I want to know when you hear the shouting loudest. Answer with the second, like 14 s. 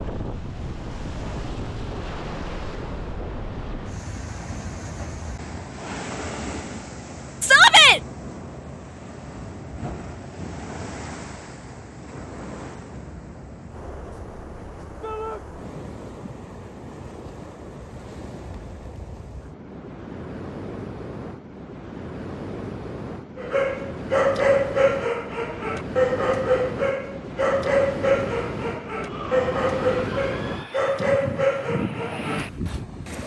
8 s.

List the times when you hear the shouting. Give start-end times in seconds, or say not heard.
7.4-8.0, 15.0-15.4, 28.9-30.9.